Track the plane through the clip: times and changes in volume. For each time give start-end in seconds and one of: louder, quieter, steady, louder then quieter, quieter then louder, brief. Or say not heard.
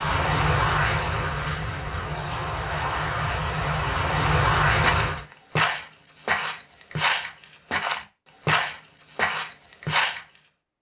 0.0-5.2 quieter then louder.